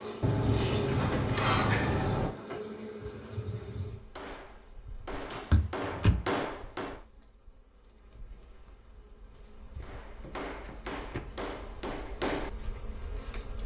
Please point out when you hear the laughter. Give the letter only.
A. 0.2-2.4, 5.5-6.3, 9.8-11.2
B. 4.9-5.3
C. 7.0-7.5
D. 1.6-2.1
D.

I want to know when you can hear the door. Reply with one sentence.
The door can be heard from 0.2 to 2.4 s, from 5.5 to 6.3 s and from 9.8 to 11.2 s.